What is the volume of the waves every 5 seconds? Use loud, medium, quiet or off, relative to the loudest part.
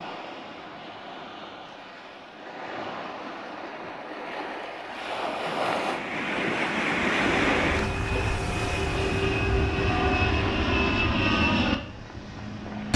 medium, loud, medium.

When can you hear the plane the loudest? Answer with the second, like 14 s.
11 s.